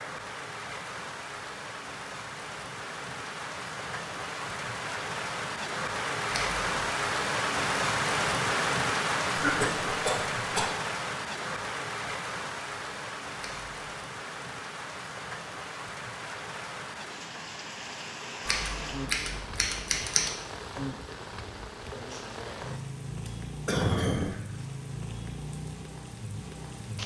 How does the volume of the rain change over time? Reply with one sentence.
The volume of the rain goes up, then down.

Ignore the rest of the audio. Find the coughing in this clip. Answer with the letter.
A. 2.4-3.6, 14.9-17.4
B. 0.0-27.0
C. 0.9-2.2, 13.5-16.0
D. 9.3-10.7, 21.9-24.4
D.